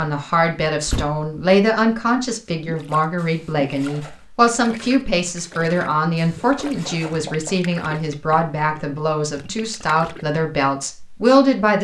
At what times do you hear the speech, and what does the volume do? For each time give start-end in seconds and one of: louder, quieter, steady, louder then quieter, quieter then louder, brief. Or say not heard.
0.0-11.7 steady.